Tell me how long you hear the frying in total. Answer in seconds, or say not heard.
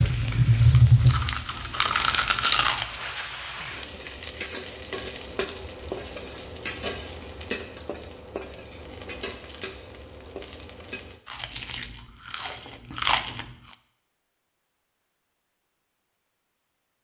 11 s.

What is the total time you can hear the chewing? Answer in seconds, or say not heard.
5 s.